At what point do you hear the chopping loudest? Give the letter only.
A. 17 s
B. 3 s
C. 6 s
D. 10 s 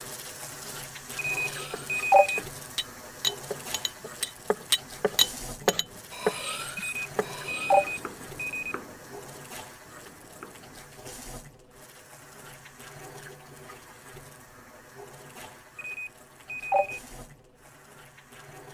C.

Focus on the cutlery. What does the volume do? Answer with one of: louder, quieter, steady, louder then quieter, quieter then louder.
louder then quieter.